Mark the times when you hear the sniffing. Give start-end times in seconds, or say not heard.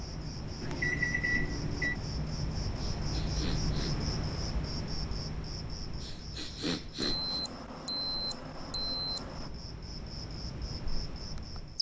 3.0-4.0, 6.0-7.5.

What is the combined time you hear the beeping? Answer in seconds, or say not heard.
4 s.